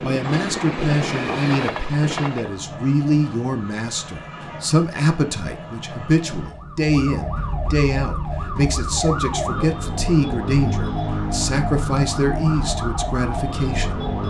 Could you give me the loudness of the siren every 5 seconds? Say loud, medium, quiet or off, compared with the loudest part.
medium, loud, loud.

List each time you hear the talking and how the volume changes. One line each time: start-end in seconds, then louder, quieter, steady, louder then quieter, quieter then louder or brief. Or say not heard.
0.0-14.0 steady.